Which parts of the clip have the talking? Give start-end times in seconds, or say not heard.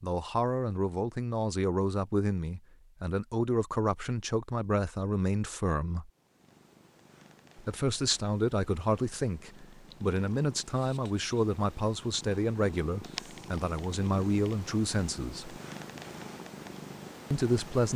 0.0-6.1, 7.5-15.6, 17.3-17.9.